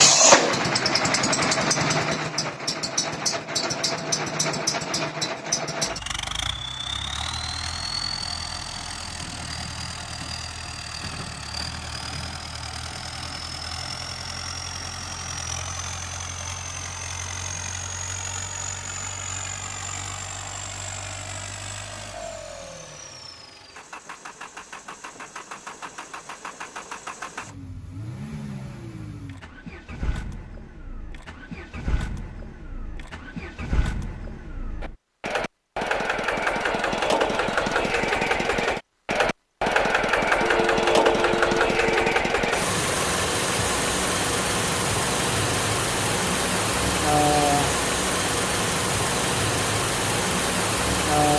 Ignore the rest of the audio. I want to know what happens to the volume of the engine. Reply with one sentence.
The volume of the engine goes down, then up.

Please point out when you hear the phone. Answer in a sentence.
You can hear the phone from 40.4 to 42.0 s.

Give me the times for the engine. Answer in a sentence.
You can hear the engine from 0.0 to 51.3 s.